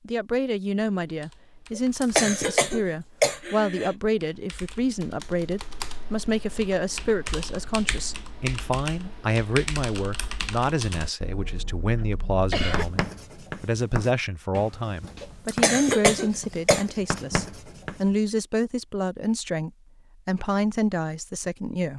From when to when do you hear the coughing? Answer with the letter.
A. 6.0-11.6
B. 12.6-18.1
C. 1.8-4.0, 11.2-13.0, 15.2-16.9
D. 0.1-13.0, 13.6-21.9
C.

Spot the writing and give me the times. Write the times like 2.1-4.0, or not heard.
12.6-18.1.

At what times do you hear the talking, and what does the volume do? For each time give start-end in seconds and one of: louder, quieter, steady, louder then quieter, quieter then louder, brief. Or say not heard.
0.1-13.0 steady
13.6-21.9 steady.